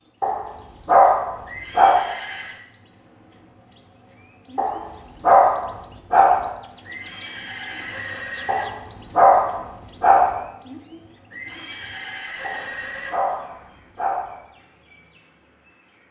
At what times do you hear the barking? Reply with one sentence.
You can hear the barking from 0.2 to 2.0 s, from 4.5 to 6.5 s, from 8.4 to 10.4 s and from 12.4 to 14.3 s.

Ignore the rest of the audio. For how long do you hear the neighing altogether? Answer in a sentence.
You can hear the neighing for 5 seconds altogether.